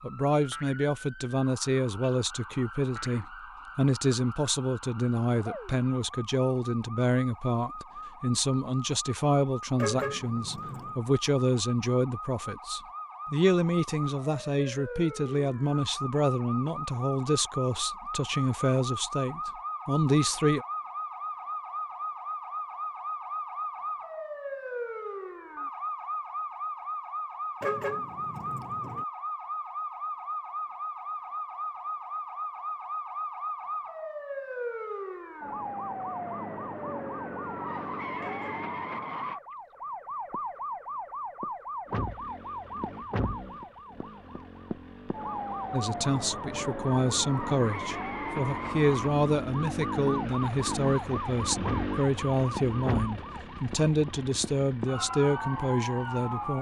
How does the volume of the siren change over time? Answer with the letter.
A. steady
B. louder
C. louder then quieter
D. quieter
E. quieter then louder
B.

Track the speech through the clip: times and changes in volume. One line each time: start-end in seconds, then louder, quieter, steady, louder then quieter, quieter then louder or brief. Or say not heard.
0.0-20.6 steady
45.7-56.5 steady.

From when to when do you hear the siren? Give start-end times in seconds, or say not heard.
0.0-56.5.